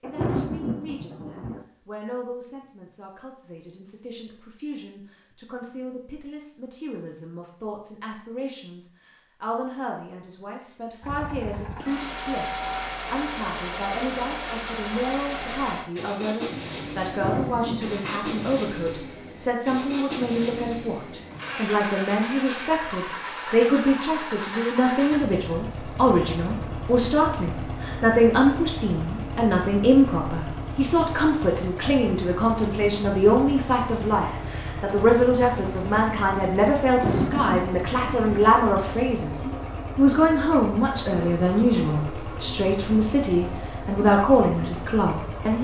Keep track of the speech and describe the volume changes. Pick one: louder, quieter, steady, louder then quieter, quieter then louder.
louder.